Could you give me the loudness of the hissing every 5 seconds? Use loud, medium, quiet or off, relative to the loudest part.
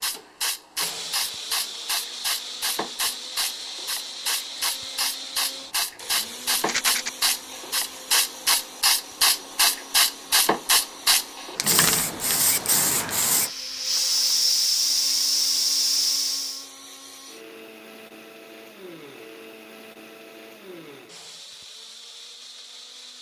medium, loud, loud, loud, off.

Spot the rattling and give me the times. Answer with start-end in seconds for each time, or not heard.
6.5-7.1.